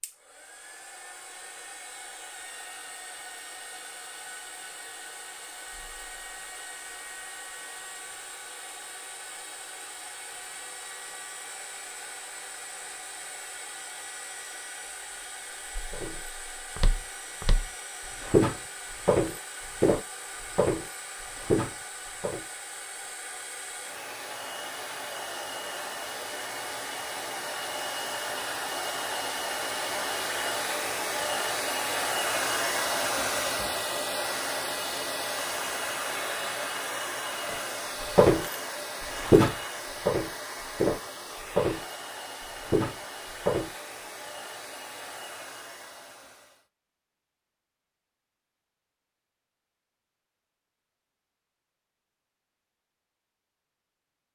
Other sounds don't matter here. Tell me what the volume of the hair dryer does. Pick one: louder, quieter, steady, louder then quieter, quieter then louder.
louder then quieter.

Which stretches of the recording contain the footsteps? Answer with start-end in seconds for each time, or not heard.
15.9-22.4, 37.5-38.5, 39.1-42.0, 42.5-43.8.